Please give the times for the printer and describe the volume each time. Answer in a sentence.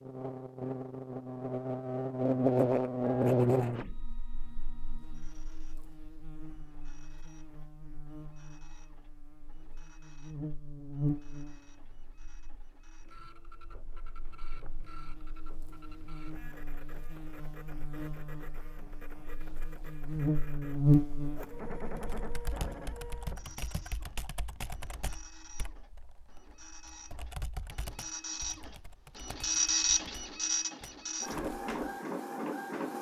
The printer can be heard from 3.0 to 32.9 s, getting louder.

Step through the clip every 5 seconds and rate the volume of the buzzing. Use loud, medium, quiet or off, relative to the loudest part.
loud, quiet, quiet, quiet, loud, off, off.